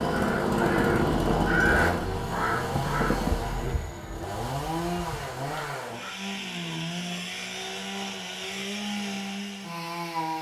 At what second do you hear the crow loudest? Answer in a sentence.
The loudest moment of the crow is at 2 seconds.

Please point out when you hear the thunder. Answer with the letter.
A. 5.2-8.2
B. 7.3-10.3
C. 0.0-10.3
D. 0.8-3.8
D.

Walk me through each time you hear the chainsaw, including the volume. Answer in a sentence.
The chainsaw can be heard from 0.0 to 10.3 s, getting quieter.